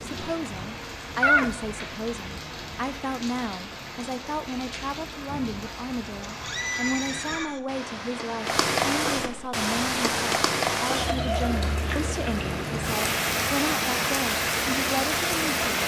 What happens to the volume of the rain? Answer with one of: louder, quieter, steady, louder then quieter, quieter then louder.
louder.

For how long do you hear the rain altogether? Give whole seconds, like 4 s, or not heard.
16 s.